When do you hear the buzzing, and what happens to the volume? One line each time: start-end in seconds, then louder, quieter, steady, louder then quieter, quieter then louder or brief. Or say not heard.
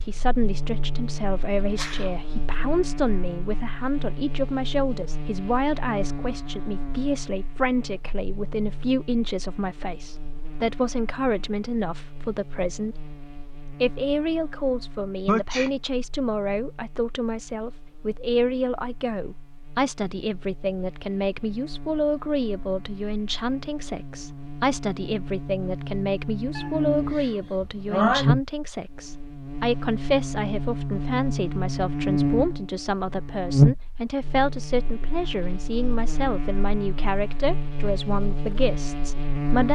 0.0-39.6 quieter then louder.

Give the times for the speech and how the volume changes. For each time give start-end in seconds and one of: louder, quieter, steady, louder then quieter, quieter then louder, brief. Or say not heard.
0.0-39.6 steady.